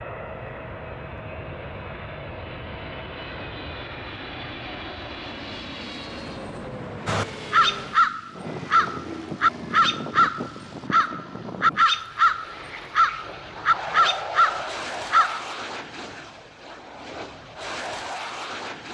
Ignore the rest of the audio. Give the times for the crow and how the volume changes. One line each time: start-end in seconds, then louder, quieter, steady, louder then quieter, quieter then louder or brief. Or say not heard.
7.0-15.4 steady.